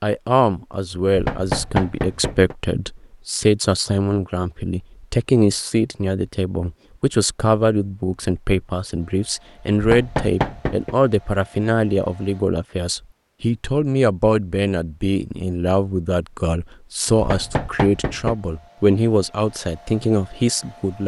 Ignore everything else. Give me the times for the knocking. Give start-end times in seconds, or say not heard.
1.1-2.5, 9.8-10.9, 17.1-18.4.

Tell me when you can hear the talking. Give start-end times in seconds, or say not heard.
0.0-21.0.